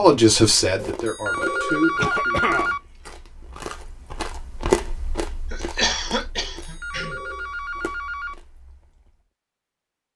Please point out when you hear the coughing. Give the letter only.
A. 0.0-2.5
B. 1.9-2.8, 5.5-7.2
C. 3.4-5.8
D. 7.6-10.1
B.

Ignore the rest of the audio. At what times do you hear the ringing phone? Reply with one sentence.
The ringing phone can be heard from 0.8 to 2.8 s and from 6.3 to 8.3 s.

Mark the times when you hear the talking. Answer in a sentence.
The talking can be heard from 0.0 to 2.5 s.